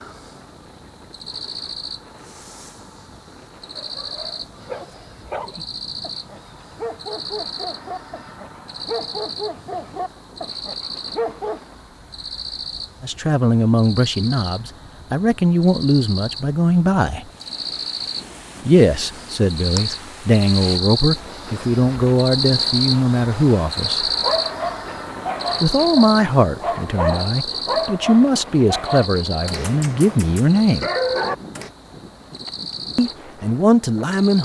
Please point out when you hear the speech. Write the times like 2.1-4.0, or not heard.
13.0-17.2, 18.6-24.1, 25.6-30.9, 33.0-34.4.